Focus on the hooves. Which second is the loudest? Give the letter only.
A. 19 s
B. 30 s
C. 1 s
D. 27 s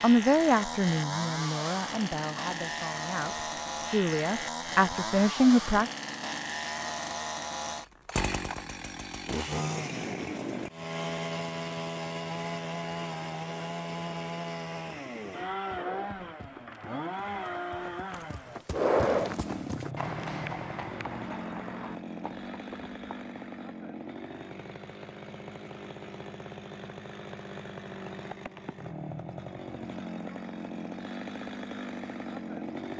A.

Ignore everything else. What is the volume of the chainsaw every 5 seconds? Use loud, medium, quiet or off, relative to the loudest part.
loud, loud, loud, loud, medium, medium, loud.